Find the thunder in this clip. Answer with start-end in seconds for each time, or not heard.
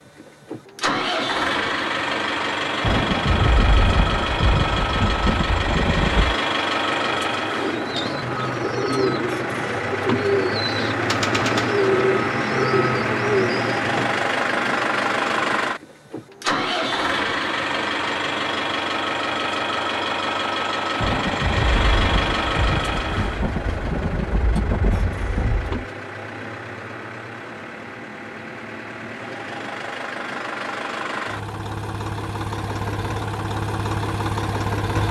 2.8-6.3, 21.0-25.9.